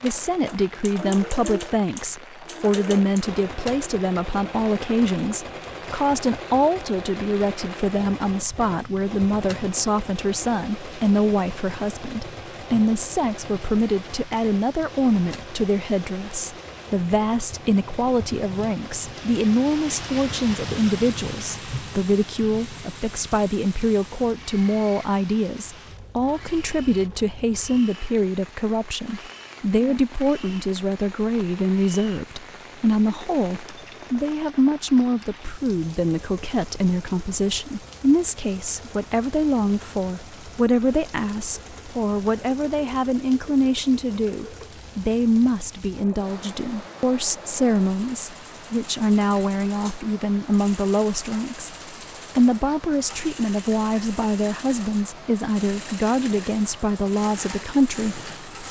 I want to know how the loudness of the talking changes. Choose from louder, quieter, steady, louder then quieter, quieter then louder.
steady.